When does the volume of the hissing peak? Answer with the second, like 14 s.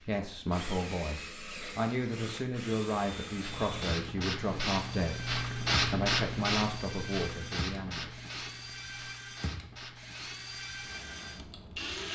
6 s.